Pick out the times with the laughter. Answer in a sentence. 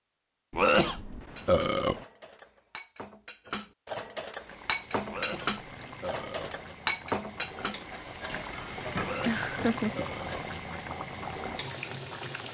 The laughter can be heard from 9.2 to 10.1 s.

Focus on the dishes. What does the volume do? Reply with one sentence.
The volume of the dishes goes up, then down.